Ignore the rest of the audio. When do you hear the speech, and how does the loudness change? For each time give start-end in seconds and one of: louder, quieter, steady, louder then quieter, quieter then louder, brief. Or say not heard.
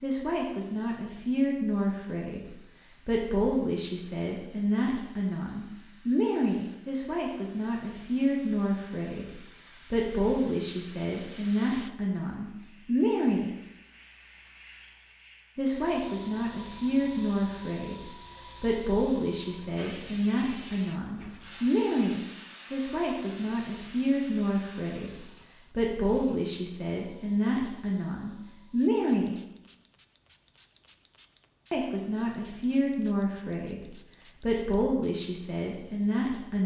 0.0-13.5 steady
15.6-29.4 steady
31.7-36.6 steady.